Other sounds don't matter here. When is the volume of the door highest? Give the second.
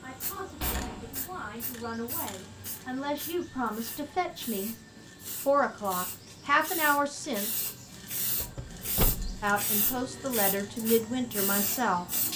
9 s.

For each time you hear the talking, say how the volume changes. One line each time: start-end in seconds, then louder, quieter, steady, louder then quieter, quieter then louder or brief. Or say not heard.
0.0-4.8 louder
5.5-7.7 brief
9.4-12.1 brief.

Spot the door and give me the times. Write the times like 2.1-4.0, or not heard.
0.6-1.2, 8.4-9.4.